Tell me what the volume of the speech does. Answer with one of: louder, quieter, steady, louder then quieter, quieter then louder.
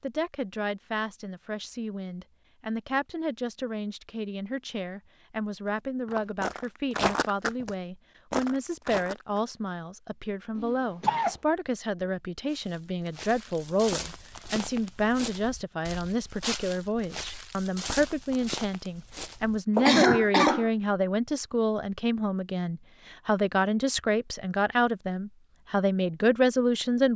louder.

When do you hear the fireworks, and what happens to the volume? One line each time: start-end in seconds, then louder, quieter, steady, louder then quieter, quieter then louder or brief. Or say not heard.
not heard.